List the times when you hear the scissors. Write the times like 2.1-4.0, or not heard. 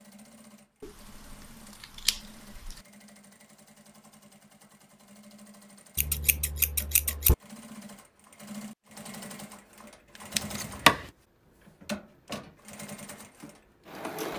0.8-2.8, 6.0-7.3, 10.3-11.1.